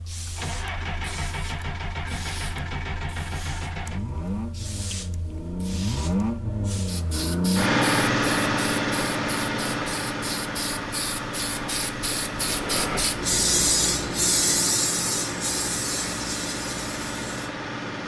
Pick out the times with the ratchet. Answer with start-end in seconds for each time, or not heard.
not heard.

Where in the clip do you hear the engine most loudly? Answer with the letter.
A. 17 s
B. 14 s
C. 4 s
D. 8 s
D.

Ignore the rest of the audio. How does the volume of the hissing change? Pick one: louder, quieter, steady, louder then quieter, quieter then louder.
louder.